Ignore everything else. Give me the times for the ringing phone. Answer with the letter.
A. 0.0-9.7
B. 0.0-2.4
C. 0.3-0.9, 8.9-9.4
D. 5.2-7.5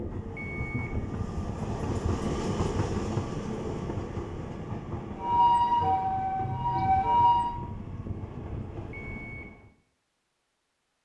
C.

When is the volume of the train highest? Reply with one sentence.
The loudest moment of the train is at 3 seconds.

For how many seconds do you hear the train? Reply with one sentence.
The train can be heard for 10 seconds in total.